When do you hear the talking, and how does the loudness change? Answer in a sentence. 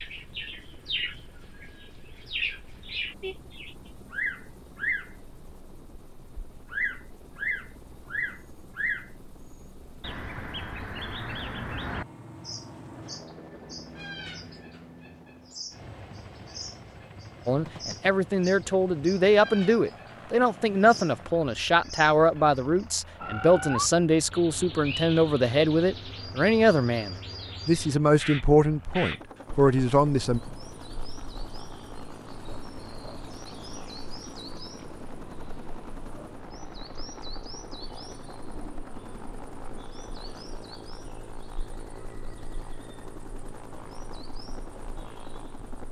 You can hear the talking from 17.4 to 30.4 s, at a steady volume.